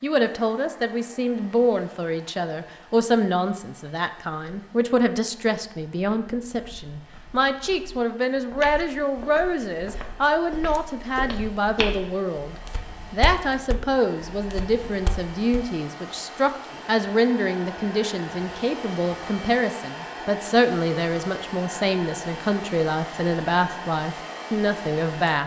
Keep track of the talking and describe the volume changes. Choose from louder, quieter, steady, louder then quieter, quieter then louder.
steady.